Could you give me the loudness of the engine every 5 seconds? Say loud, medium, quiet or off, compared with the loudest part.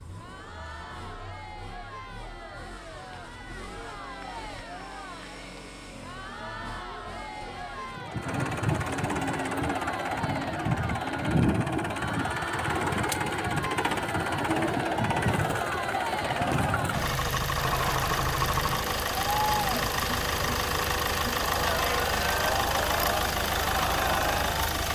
quiet, medium, loud, loud, loud.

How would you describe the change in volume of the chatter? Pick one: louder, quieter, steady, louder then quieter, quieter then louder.
louder.